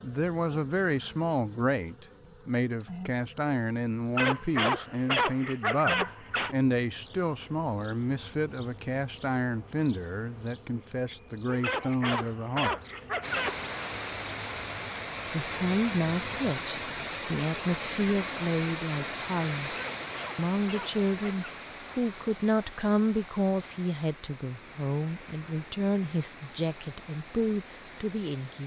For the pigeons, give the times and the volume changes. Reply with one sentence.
You can't hear the pigeons here.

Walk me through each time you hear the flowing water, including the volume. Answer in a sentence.
You can hear the flowing water from 13.2 to 28.6 s, getting quieter.